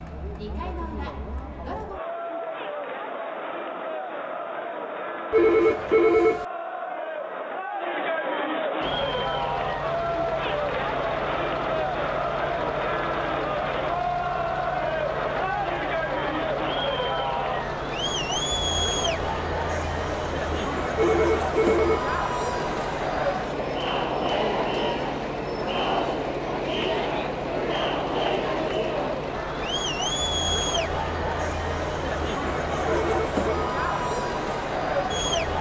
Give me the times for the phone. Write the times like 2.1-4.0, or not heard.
5.3-6.5, 20.9-22.1, 32.9-33.8.